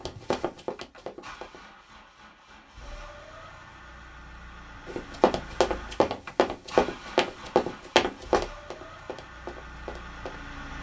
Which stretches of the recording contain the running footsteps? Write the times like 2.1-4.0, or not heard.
0.0-1.6, 4.8-10.4.